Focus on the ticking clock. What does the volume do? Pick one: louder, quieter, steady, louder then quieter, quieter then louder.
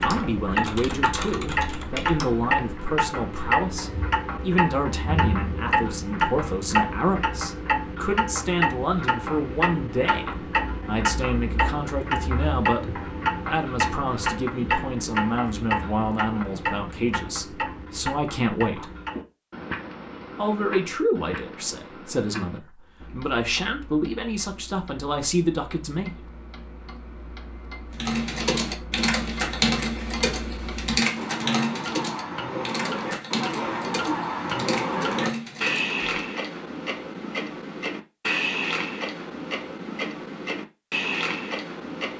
quieter then louder.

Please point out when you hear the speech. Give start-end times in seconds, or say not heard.
0.0-18.9, 20.4-26.2.